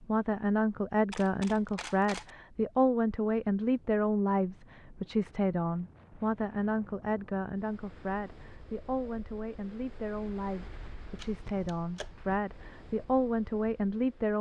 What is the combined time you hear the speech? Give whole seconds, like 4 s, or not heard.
14 s.